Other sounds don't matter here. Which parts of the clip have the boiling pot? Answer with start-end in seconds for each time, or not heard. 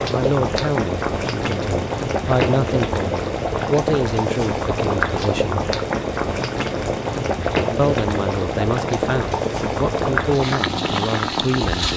0.0-11.9.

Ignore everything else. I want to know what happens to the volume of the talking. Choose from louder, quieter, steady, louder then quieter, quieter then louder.
steady.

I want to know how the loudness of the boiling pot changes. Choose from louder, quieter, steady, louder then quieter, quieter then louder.
steady.